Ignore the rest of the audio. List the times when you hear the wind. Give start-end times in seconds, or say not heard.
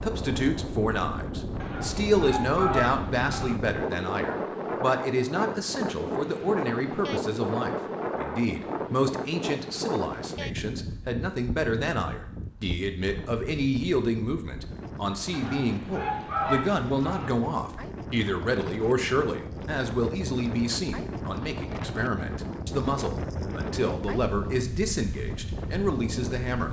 0.0-26.6.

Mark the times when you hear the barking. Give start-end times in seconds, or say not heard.
1.6-3.6, 15.3-17.3.